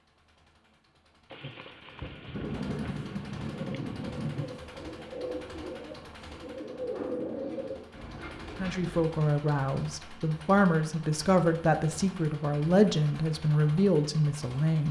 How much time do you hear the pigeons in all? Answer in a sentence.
The pigeons can be heard for 6 seconds in total.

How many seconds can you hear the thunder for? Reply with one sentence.
You can hear the thunder for 3 seconds altogether.